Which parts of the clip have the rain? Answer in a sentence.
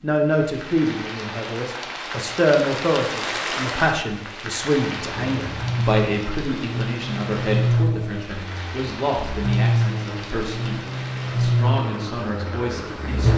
You can hear the rain from 0.0 to 13.3 s.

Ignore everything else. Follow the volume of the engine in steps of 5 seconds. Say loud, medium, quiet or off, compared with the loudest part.
off, loud, loud.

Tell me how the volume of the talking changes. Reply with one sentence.
The volume of the talking goes down.